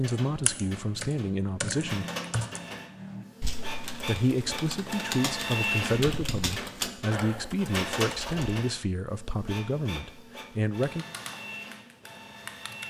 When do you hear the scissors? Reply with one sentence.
The scissors can't be heard in this clip.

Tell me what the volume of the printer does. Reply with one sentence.
The volume of the printer goes up, then down.